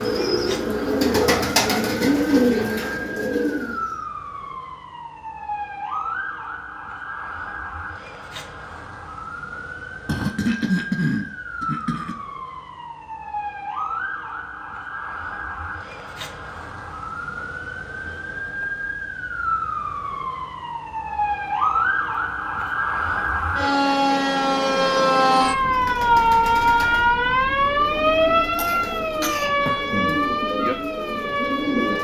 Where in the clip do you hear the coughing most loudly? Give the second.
11 s.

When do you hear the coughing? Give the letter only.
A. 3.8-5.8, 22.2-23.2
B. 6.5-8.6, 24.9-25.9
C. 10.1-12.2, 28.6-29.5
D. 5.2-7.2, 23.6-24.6
C.